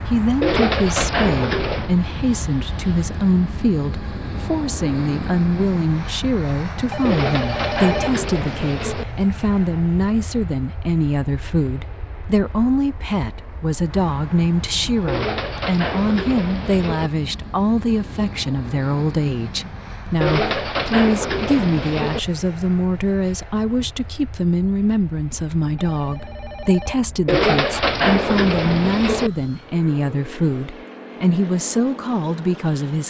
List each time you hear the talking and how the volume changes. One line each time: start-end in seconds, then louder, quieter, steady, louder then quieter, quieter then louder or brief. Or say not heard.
0.0-33.0 steady.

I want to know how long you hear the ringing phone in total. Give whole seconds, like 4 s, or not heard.
3 s.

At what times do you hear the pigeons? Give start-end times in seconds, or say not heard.
0.4-1.9, 7.0-9.1, 15.1-17.1, 20.2-22.2, 27.2-29.3.